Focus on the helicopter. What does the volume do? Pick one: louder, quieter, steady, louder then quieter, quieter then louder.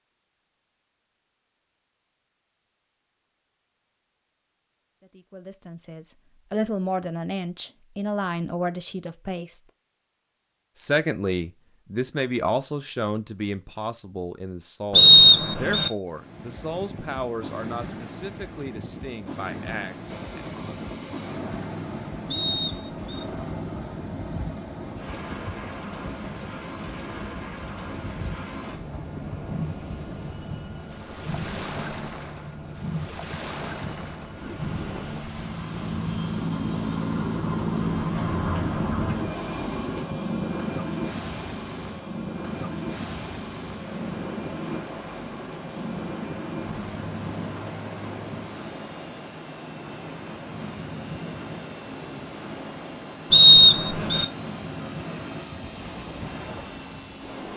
louder then quieter.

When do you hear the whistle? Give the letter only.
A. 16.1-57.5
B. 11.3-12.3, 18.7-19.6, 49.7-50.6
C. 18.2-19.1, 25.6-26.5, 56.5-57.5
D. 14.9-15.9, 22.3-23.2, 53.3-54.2
D.